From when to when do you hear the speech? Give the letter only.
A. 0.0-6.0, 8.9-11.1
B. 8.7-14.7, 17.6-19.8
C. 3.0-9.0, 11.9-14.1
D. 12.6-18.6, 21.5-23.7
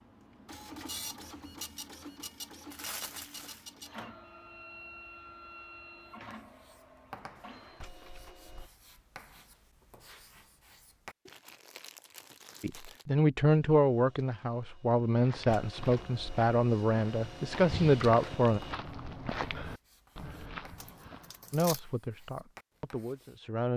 D.